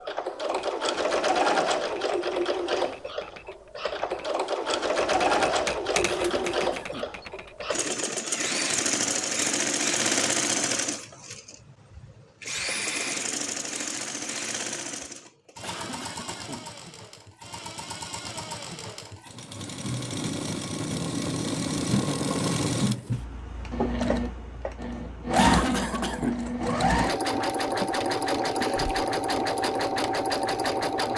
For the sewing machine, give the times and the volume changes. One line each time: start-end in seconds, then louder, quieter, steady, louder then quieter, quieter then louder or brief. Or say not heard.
0.0-31.1 quieter then louder.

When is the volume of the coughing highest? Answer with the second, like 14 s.
26 s.